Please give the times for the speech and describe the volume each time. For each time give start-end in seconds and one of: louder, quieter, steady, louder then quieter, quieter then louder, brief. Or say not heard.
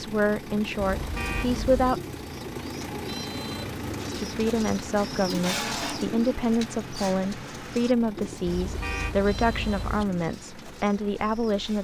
0.0-2.0 brief
4.0-11.7 steady.